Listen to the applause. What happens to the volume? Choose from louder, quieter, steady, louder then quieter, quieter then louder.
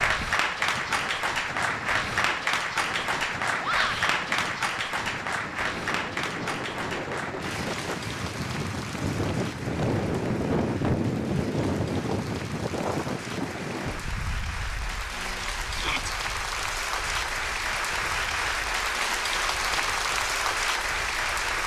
quieter then louder.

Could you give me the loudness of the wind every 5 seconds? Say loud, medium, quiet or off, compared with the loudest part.
quiet, loud, loud, quiet, quiet.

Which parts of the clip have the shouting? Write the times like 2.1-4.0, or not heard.
3.6-4.2, 15.7-16.1.